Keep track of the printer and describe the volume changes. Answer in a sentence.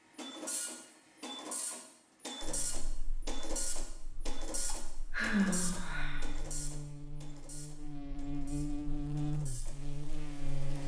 The volume of the printer goes down.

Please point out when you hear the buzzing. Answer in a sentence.
The buzzing can be heard from 2.4 to 10.8 s.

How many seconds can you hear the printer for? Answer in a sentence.
The printer can be heard for 11 seconds in total.